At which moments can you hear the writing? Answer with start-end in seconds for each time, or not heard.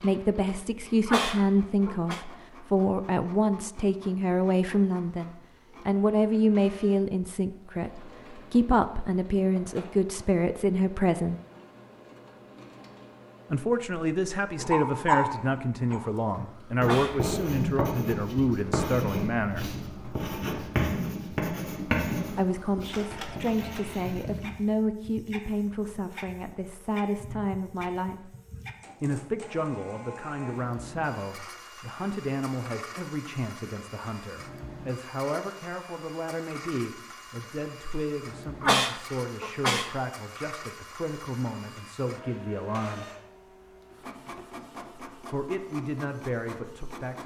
14.6-24.5.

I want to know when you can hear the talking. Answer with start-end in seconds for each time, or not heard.
0.0-11.3, 13.5-19.8, 22.3-28.3, 29.0-43.0, 45.2-47.2.